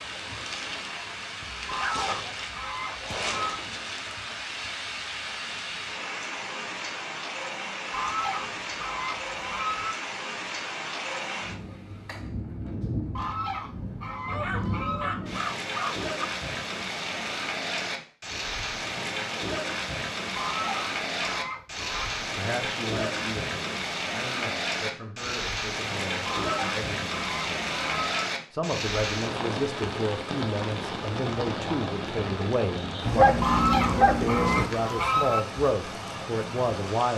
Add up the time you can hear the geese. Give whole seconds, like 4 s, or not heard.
12 s.